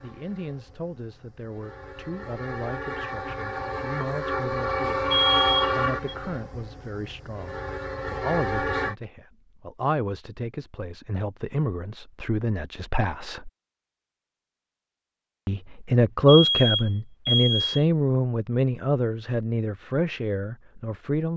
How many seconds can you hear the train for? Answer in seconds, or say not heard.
9 s.